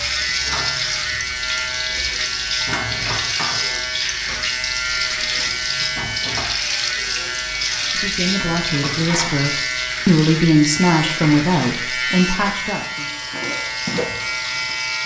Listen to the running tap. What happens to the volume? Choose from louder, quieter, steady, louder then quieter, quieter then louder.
quieter.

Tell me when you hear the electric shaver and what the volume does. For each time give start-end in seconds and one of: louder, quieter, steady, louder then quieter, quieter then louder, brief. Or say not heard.
0.0-15.0 steady.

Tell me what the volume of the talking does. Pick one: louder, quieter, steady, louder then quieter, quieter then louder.
louder then quieter.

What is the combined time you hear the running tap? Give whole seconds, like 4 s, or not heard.
15 s.